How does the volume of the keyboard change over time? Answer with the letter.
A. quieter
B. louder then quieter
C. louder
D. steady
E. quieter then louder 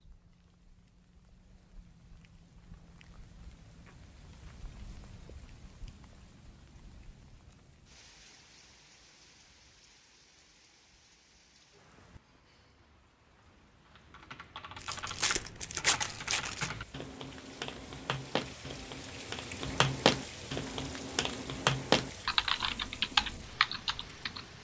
C.